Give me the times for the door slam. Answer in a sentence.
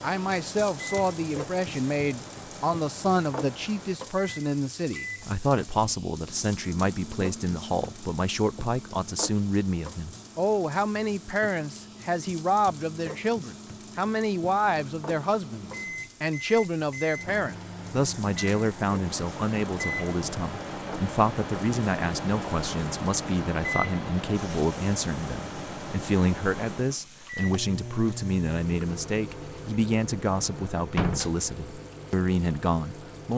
You can hear the door slam from 30.9 to 31.4 s.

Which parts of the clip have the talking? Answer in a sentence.
You can hear the talking from 0.0 to 33.3 s.